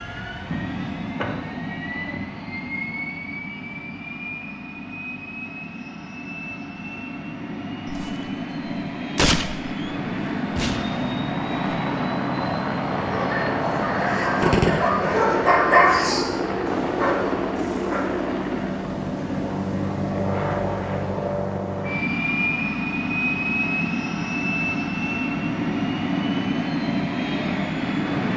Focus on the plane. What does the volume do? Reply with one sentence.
The loudness of the plane goes up.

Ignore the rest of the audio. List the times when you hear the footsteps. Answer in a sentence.
You can't hear the footsteps here.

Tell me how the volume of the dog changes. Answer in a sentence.
The loudness of the dog goes up, then down.